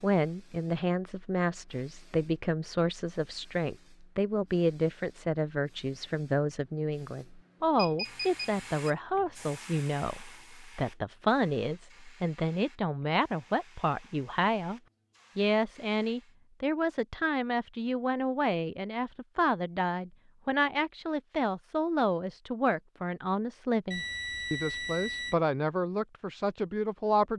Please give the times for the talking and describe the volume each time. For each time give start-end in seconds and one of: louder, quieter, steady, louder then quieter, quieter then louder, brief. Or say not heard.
0.0-27.3 steady.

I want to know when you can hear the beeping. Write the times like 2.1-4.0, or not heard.
7.8-8.9, 23.9-25.4.